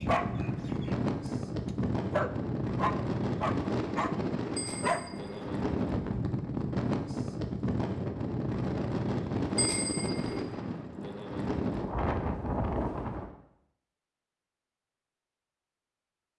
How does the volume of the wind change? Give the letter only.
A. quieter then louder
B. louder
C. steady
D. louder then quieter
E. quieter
C.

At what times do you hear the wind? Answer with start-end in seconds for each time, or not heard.
0.0-13.3.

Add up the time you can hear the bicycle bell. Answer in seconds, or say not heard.
2 s.